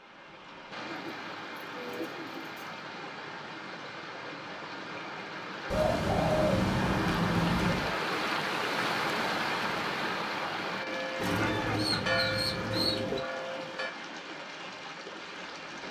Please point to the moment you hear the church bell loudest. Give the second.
12 s.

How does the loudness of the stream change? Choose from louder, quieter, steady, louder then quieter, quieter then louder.
louder then quieter.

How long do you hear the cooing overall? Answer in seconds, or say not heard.
6 s.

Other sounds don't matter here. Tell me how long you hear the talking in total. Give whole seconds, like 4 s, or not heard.
not heard.